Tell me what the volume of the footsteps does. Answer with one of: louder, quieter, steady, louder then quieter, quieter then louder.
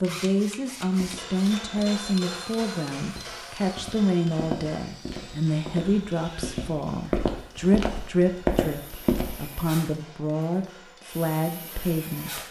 louder.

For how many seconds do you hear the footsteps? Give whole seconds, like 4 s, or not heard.
9 s.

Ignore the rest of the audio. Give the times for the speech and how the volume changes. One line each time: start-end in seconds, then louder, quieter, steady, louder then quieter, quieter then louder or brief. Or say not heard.
0.0-12.4 steady.